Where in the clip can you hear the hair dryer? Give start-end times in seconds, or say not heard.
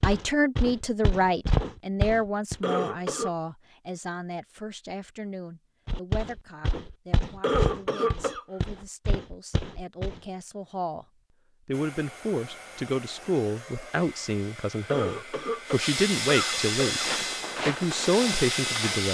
11.7-19.0.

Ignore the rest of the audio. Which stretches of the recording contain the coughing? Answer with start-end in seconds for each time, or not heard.
2.6-3.4, 7.4-8.4, 14.8-17.1.